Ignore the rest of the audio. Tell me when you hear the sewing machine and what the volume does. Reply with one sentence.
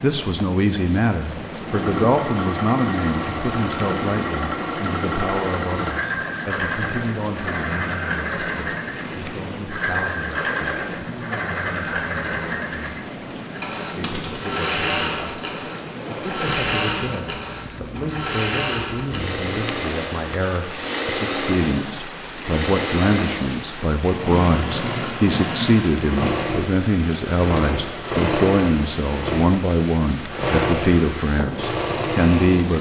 The sewing machine can be heard from 1.6 to 32.7 s, at a steady volume.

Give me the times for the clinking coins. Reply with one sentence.
You can hear the clinking coins from 14.0 to 14.5 s.